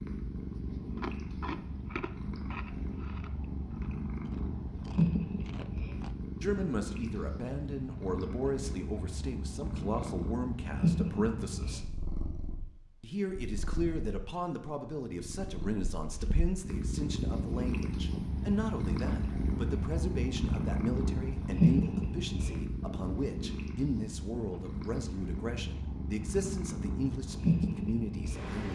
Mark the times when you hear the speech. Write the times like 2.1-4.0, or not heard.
6.4-11.8, 13.0-28.7.